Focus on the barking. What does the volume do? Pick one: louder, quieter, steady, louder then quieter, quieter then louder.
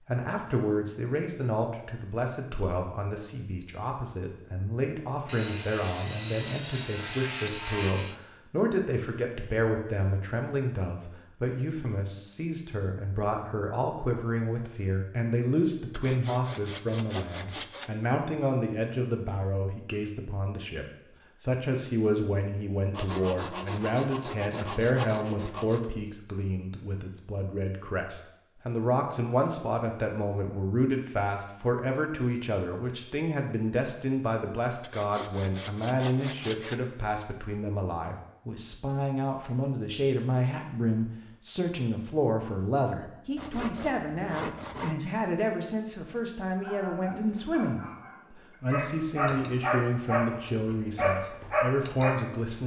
louder.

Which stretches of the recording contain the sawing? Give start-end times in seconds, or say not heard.
5.2-8.2, 15.9-17.9, 22.9-25.9, 34.8-36.8, 43.4-45.0.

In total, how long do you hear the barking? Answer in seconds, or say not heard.
6 s.